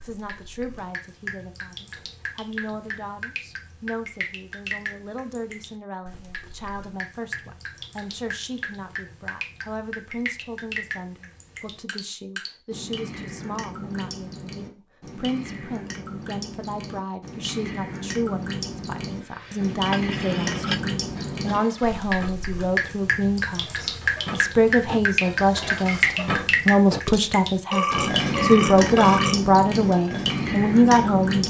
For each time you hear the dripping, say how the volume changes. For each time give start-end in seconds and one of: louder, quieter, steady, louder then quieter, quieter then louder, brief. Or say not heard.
0.0-31.4 louder.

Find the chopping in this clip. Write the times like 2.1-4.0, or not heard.
not heard.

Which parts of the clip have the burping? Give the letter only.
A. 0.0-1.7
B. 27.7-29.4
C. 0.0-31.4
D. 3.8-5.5
B.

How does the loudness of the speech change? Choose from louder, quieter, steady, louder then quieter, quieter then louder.
louder.